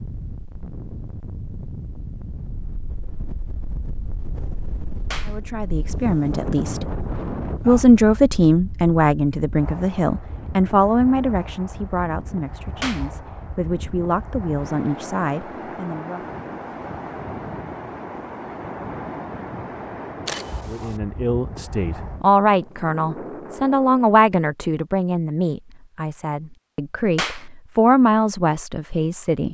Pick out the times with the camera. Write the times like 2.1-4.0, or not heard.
20.2-21.0.